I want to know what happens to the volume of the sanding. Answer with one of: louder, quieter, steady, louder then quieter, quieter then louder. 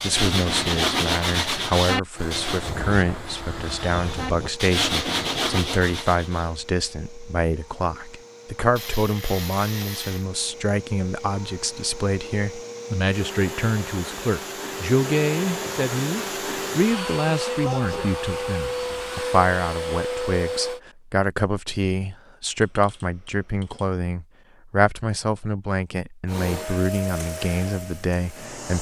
quieter then louder.